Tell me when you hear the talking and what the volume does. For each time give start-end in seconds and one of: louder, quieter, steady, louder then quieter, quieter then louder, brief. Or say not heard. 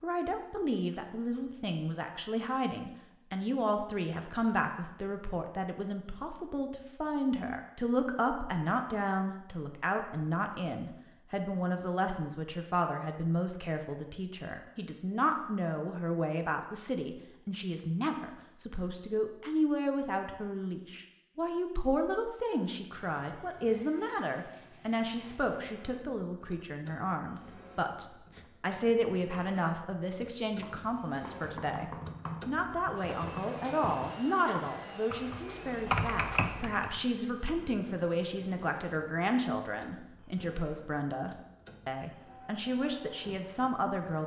0.0-44.2 steady.